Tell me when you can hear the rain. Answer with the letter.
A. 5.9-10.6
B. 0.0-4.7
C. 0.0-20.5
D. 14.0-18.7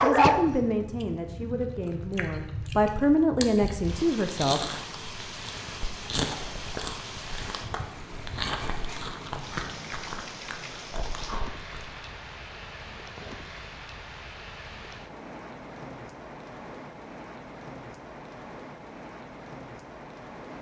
C.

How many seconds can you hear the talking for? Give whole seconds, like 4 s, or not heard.
5 s.